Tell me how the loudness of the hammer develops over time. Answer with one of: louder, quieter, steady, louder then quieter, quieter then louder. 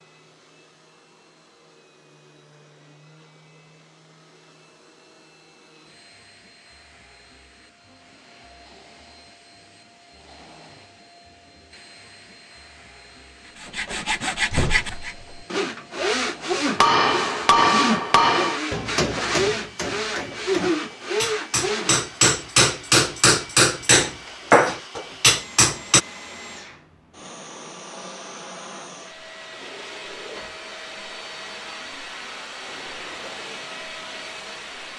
quieter then louder.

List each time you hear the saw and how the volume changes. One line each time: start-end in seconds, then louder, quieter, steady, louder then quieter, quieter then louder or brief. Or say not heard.
13.4-22.1 steady.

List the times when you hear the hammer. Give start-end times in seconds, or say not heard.
16.8-26.0.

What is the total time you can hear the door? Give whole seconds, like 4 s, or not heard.
2 s.